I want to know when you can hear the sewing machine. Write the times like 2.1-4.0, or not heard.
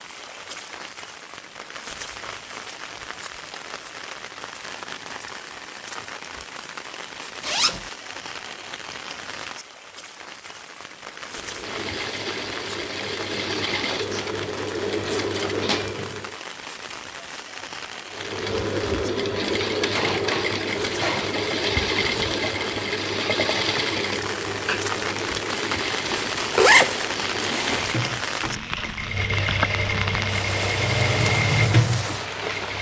11.2-16.4, 18.1-32.7.